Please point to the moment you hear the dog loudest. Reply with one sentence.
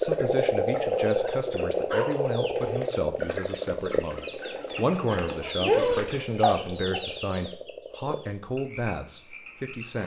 The loudest moment of the dog is at 6 seconds.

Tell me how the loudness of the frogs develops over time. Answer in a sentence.
The volume of the frogs goes down.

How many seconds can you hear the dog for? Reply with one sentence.
You can hear the dog for 2 seconds altogether.